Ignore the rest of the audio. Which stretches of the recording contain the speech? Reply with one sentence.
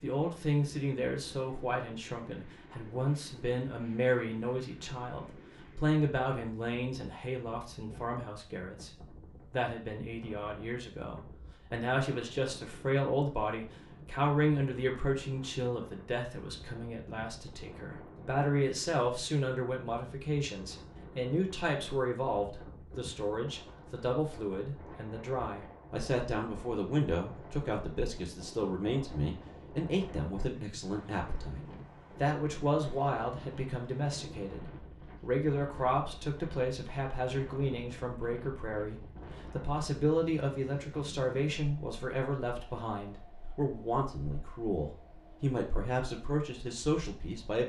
The speech can be heard from 0.0 to 8.9 s and from 9.5 to 47.6 s.